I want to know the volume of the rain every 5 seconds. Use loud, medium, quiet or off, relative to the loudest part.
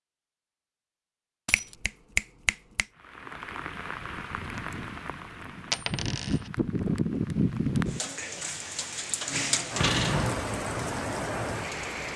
medium, loud, loud.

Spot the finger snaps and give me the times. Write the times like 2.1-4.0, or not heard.
1.5-2.9.